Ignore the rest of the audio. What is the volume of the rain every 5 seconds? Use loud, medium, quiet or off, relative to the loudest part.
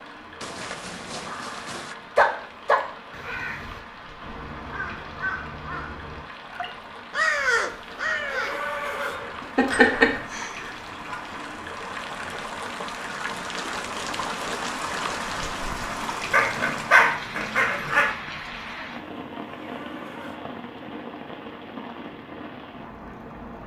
medium, medium, loud, loud, medium.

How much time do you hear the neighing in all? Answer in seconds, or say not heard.
4 s.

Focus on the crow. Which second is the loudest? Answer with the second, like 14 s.
7 s.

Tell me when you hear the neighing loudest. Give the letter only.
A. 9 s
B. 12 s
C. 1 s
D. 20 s
A.